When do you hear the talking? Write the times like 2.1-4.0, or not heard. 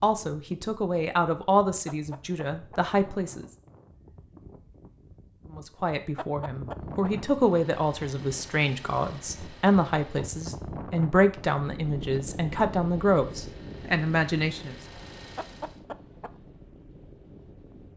0.0-3.5, 5.5-14.8.